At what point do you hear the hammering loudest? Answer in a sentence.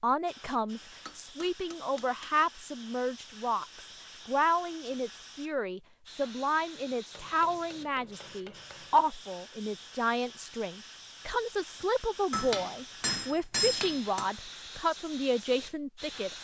The loudest moment of the hammering is at 14 seconds.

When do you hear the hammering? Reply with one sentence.
The hammering can be heard from 1.1 to 2.3 s, from 7.1 to 9.1 s and from 12.3 to 14.3 s.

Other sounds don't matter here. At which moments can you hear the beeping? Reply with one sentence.
The beeping can't be heard in this clip.